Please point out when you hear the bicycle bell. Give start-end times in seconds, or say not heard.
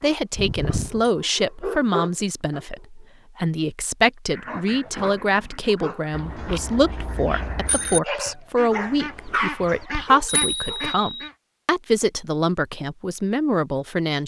0.3-1.1, 6.1-8.0, 10.2-11.3.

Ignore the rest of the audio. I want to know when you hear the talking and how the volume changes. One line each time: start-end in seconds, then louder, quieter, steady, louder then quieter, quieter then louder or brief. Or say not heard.
0.0-14.2 steady.